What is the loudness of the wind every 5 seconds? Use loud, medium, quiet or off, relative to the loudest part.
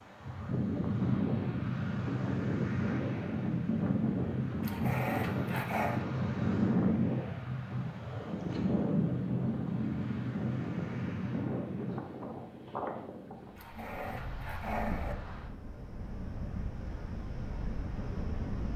loud, loud, medium, medium.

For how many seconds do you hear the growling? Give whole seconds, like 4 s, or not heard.
3 s.